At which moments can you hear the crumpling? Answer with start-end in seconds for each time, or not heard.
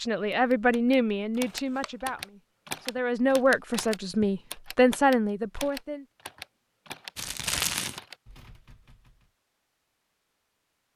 1.3-1.9, 7.2-8.0.